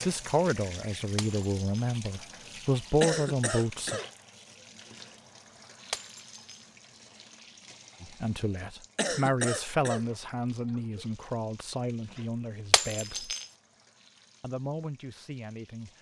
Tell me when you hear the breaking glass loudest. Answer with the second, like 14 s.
13 s.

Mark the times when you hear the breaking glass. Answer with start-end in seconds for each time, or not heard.
1.1-1.9, 5.9-6.7, 12.7-13.4.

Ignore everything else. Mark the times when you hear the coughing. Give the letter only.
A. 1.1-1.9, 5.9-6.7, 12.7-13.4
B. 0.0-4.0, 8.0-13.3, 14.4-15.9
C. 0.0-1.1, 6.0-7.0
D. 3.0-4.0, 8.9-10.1
D.